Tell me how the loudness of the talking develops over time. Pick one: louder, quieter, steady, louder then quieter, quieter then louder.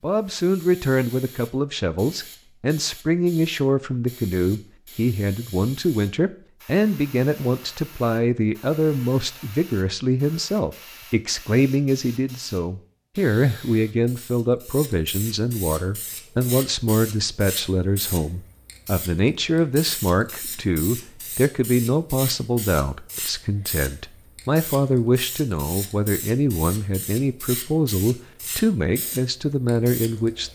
steady.